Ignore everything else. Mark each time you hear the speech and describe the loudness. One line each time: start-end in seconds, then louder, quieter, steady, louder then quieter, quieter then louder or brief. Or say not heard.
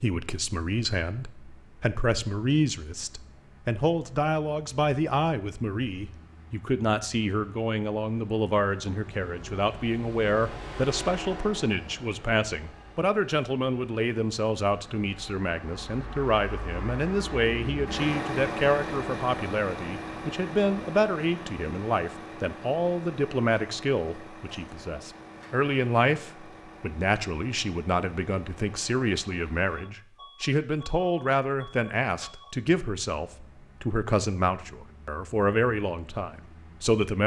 0.0-37.2 steady.